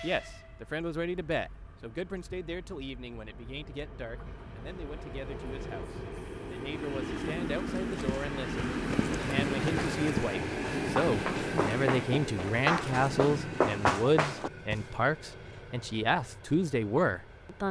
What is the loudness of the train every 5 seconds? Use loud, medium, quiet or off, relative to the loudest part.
quiet, loud, loud, quiet.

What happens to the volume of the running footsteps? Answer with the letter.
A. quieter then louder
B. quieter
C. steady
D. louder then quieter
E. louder
E.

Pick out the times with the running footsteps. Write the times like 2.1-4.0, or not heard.
7.7-14.8.